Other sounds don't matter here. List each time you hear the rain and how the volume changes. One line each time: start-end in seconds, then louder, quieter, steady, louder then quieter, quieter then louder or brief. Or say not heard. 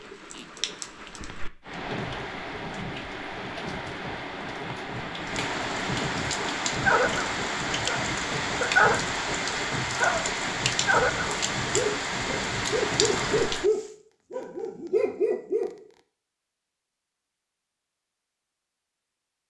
0.0-13.7 louder.